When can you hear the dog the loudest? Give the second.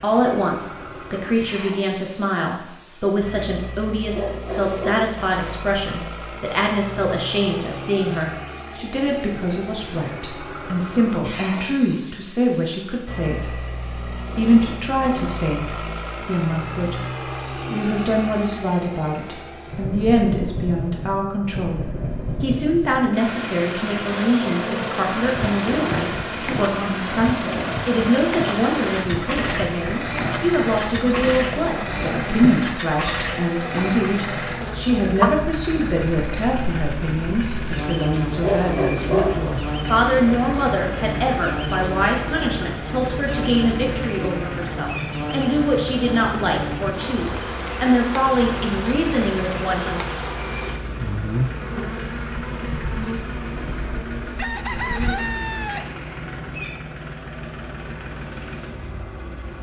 39 s.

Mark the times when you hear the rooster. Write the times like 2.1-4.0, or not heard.
54.4-56.0.